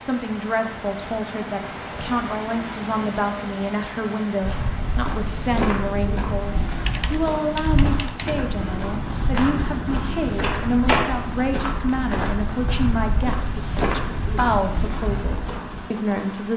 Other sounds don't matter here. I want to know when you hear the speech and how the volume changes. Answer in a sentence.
You can hear the speech from 0.0 to 16.5 s, at a steady volume.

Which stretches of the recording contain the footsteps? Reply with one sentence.
The footsteps can be heard from 4.4 to 15.8 s.